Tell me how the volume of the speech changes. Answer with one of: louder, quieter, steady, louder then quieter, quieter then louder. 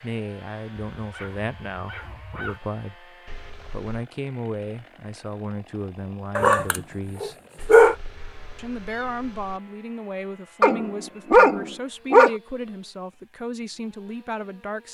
steady.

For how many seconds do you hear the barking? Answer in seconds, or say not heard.
5 s.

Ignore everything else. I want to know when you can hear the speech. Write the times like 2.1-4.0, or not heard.
0.0-7.3, 8.6-14.8.